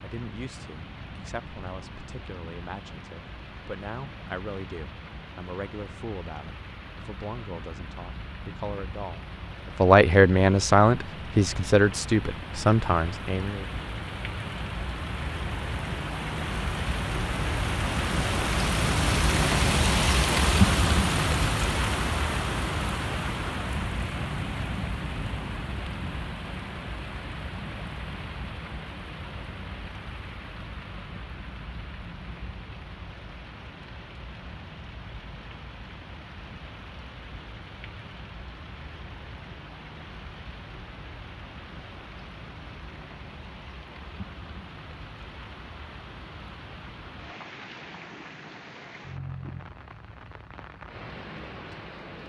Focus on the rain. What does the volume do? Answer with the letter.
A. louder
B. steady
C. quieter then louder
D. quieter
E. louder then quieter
E.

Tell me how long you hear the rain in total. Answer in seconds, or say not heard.
52 s.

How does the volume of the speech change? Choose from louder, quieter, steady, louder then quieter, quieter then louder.
louder.